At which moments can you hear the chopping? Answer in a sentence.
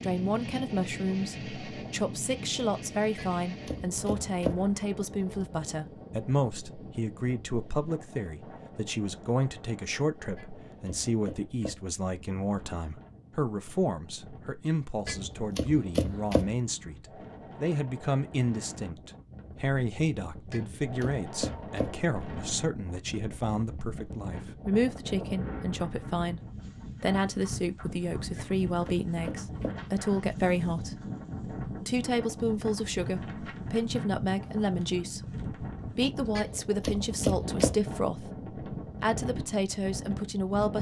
You can hear the chopping from 3.1 to 4.7 s, from 10.3 to 11.9 s, from 15.1 to 16.6 s, from 20.5 to 22.1 s, from 28.4 to 29.9 s and from 36.4 to 37.9 s.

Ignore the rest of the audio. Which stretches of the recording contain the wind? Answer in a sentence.
You can hear the wind from 0.0 to 40.7 s.